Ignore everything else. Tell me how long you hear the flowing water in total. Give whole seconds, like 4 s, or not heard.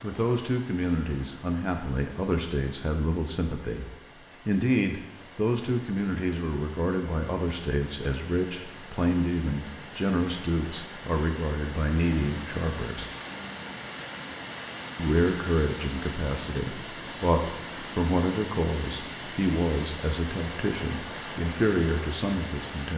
23 s.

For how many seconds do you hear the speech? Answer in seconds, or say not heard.
21 s.